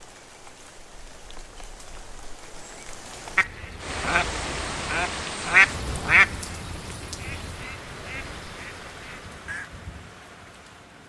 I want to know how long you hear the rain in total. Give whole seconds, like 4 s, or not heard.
11 s.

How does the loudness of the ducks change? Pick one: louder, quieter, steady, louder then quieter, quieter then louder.
louder then quieter.